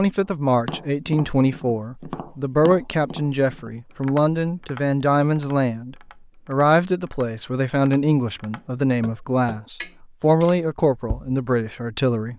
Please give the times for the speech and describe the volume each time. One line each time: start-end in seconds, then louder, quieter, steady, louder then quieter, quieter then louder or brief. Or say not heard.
0.0-12.3 steady.